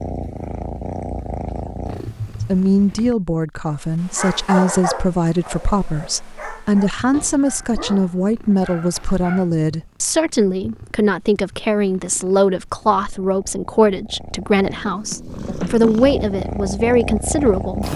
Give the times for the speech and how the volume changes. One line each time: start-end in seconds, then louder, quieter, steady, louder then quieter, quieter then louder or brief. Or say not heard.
2.4-17.9 steady.